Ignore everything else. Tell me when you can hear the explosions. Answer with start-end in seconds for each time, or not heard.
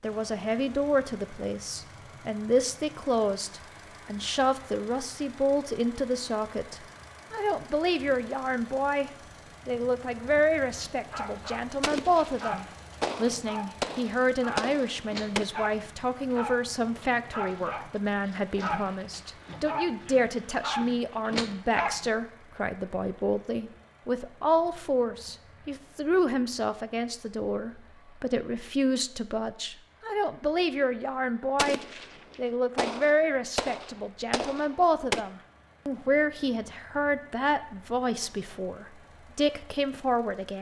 11.8-15.4, 31.6-35.2.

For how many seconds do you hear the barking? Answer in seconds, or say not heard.
11 s.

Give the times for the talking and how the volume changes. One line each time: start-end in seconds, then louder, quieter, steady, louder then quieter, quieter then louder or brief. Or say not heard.
0.0-40.5 steady.